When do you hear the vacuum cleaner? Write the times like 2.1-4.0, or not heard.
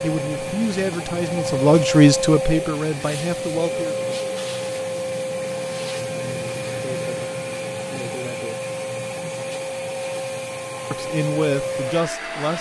0.0-12.5.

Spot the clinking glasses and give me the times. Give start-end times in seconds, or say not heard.
not heard.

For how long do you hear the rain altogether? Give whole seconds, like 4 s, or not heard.
not heard.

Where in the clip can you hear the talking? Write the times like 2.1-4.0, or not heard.
0.0-4.0, 10.9-12.5.